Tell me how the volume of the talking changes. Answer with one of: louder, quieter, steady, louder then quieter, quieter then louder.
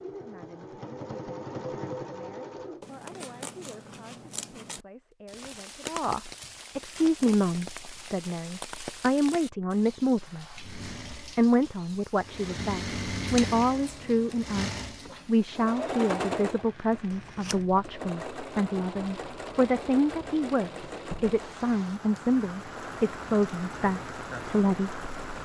louder.